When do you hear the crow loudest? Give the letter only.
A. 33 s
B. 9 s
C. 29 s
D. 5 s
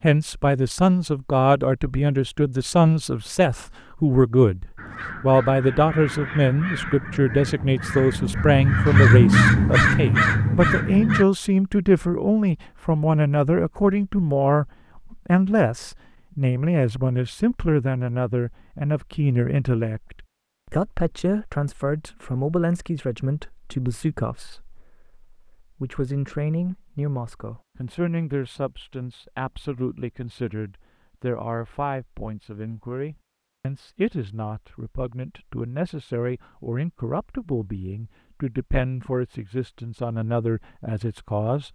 B.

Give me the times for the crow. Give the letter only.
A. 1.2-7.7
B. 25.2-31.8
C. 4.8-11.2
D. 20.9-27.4
C.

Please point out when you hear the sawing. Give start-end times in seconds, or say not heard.
not heard.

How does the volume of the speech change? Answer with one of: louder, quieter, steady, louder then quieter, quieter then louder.
quieter.